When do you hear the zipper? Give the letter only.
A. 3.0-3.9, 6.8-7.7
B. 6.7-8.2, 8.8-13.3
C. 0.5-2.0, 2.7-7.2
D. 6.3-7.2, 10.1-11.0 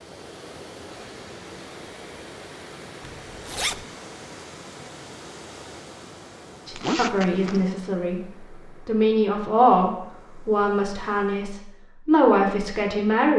A.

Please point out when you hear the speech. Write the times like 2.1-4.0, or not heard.
6.7-8.2, 8.8-13.3.